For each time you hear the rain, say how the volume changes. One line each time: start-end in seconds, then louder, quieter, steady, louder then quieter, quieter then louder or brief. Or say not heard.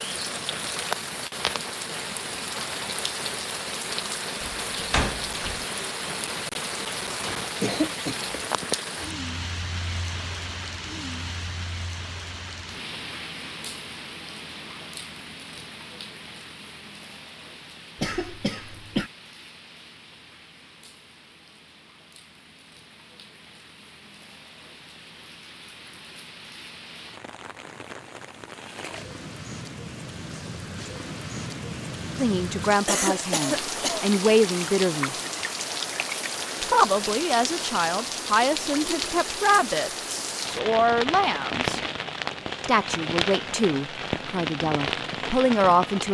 0.0-46.1 quieter then louder.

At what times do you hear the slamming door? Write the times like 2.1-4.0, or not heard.
4.4-5.7.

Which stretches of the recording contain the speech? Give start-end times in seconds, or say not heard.
32.1-35.1, 36.6-41.8, 42.6-46.1.